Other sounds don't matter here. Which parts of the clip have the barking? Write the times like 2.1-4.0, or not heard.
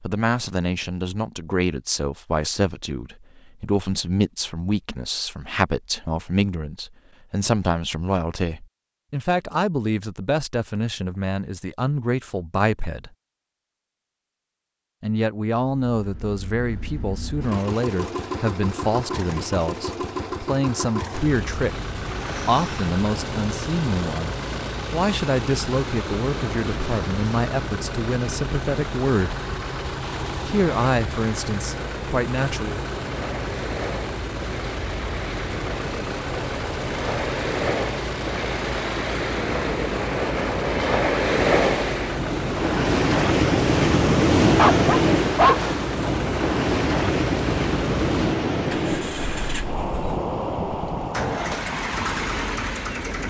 44.5-46.1.